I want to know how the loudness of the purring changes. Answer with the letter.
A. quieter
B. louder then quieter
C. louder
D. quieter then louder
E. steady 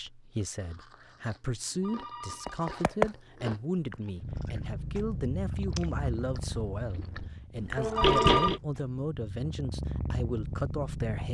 D.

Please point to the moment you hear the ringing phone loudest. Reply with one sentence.
The volume of the ringing phone peaks at 8 seconds.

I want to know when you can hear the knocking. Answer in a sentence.
You can hear the knocking from 2.5 to 4.0 s and from 7.8 to 8.6 s.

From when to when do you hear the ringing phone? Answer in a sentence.
The ringing phone can be heard from 1.8 to 2.7 s and from 8.0 to 8.6 s.